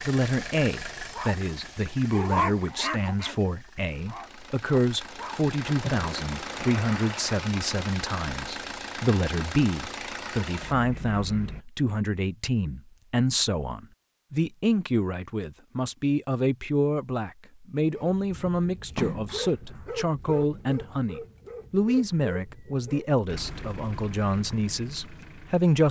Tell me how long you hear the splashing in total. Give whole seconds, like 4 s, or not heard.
3 s.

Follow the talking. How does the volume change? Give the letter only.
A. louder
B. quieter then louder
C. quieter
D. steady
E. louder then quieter
D.